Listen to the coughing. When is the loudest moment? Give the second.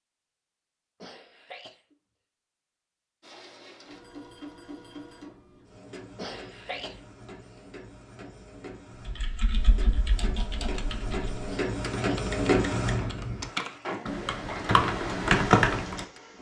7 s.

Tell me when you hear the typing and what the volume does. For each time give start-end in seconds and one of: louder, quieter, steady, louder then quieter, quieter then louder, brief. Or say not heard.
9.1-16.1 louder.